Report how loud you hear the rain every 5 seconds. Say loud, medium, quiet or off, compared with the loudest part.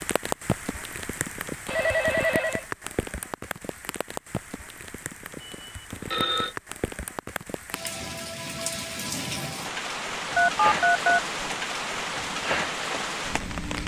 medium, medium, loud.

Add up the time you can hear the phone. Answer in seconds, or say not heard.
3 s.